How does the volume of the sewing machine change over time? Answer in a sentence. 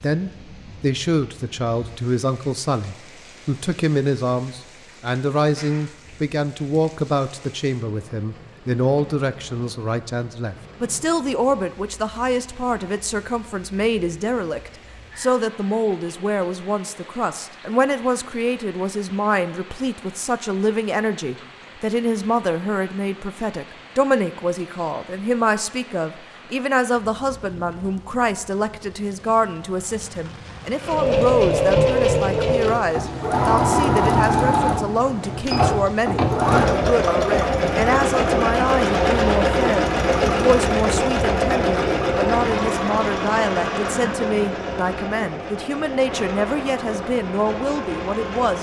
The loudness of the sewing machine goes down.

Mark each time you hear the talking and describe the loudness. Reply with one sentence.
You can hear the talking from 0.0 to 48.5 s, at a steady volume.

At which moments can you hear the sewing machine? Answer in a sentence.
You can hear the sewing machine from 30.8 to 48.5 s.